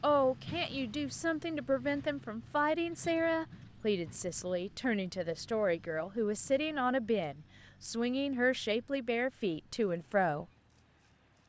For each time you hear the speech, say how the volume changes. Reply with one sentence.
You can hear the speech from 0.0 to 10.4 s, at a steady volume.